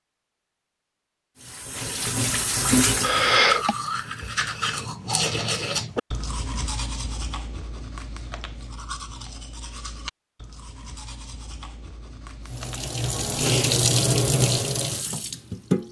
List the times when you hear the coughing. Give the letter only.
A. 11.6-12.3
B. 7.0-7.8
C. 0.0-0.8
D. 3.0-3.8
D.